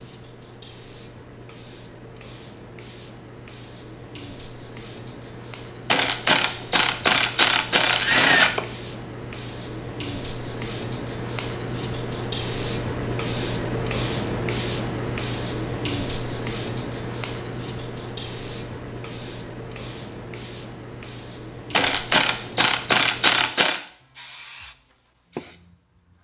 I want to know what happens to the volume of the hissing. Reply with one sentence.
The volume of the hissing goes up, then down.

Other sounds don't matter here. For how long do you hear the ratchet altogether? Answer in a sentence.
You can hear the ratchet for 5 seconds altogether.